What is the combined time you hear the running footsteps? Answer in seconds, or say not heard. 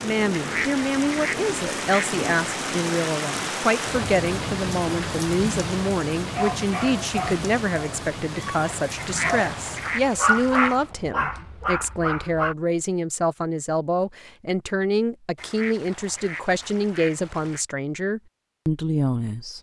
not heard.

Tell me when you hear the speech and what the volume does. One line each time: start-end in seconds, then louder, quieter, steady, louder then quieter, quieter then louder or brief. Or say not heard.
0.0-19.5 steady.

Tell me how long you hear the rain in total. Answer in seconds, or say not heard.
10 s.